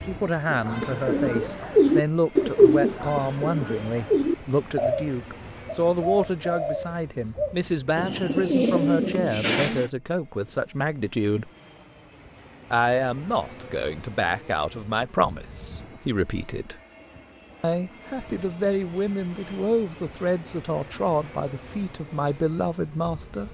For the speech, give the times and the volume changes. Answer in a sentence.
The speech can be heard from 0.1 to 11.5 s, at a steady volume; from 12.7 to 16.8 s, at a steady volume; and from 17.6 to 23.4 s, at a steady volume.